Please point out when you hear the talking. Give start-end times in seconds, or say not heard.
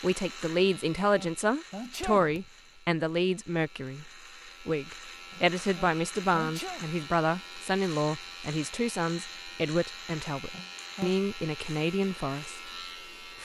0.0-12.7.